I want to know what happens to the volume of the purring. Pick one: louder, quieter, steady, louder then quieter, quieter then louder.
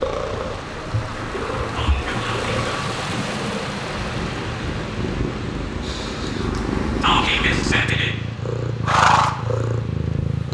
louder.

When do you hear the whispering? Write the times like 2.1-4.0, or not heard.
1.8-2.5, 7.0-8.2.